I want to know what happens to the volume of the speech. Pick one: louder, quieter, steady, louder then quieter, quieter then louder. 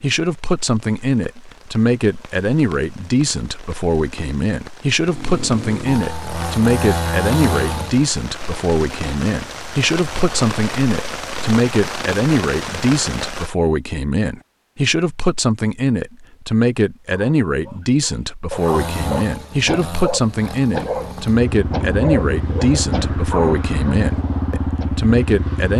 steady.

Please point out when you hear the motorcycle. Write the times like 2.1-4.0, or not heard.
5.0-8.1, 18.5-25.7.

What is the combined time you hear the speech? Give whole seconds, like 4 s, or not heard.
26 s.